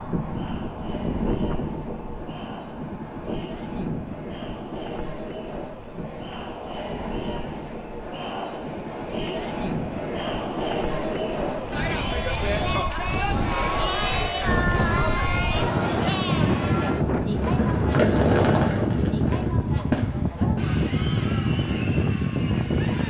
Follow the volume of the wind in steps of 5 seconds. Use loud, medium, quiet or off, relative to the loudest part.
medium, medium, medium, loud, loud.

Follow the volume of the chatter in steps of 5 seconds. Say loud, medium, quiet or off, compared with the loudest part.
quiet, medium, loud, loud, medium.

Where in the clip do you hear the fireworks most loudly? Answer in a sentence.
The volume of the fireworks peaks at 18 seconds.